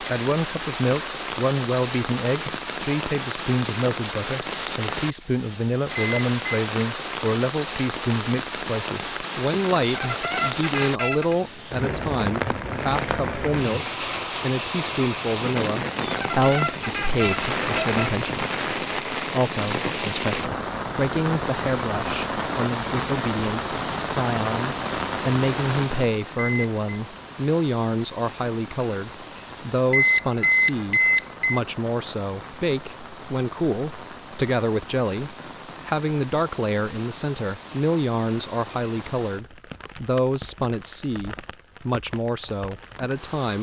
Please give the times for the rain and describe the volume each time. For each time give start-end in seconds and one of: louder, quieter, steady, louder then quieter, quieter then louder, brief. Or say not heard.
0.0-43.5 quieter.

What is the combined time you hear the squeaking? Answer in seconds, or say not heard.
5 s.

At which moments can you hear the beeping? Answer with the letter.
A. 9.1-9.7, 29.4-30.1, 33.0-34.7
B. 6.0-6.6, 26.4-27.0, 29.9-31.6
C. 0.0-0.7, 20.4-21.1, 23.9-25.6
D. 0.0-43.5
B.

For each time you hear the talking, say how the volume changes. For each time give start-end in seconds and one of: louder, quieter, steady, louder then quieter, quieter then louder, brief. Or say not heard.
0.0-43.5 steady.